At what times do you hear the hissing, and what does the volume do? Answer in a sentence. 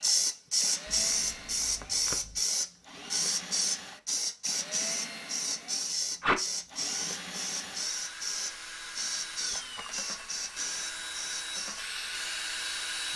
The hissing can be heard from 0.0 to 13.1 s, getting quieter.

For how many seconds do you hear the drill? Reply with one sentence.
The drill can be heard for 13 seconds in total.